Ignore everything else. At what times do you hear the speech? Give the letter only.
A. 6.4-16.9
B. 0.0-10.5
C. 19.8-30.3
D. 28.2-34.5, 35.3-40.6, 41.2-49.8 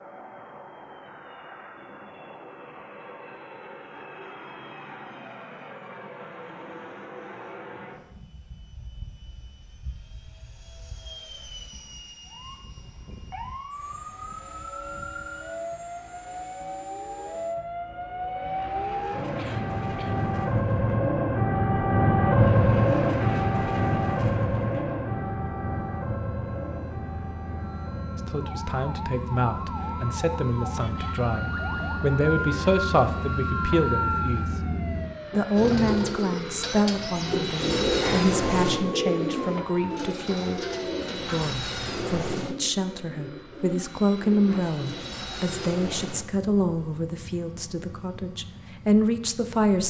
D.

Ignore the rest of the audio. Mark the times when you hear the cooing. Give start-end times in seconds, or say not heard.
35.5-46.0.